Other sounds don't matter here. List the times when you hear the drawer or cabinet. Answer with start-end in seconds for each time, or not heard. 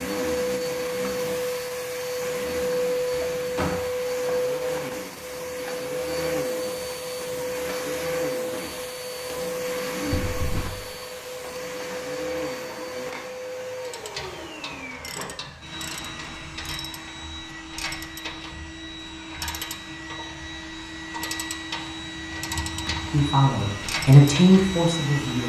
3.1-3.9, 10.1-10.8, 22.3-23.2.